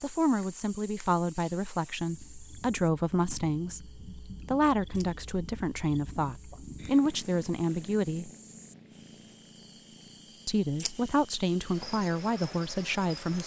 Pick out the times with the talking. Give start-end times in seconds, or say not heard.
0.0-8.3, 10.4-13.4.